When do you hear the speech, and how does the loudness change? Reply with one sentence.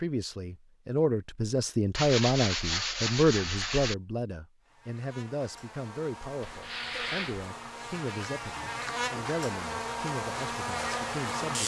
You can hear the speech from 0.0 to 11.6 s, getting quieter.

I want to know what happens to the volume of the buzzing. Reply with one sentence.
The loudness of the buzzing goes up.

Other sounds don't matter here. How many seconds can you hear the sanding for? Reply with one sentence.
You can hear the sanding for 3 seconds altogether.